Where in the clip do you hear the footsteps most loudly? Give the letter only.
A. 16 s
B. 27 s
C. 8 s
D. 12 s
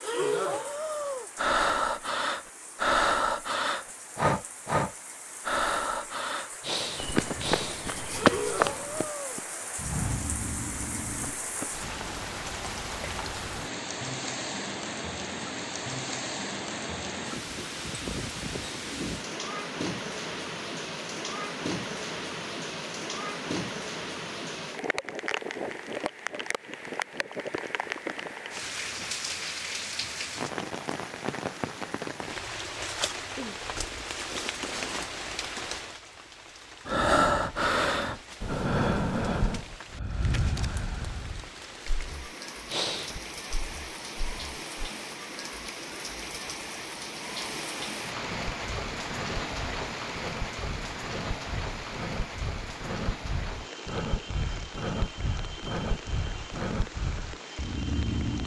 C.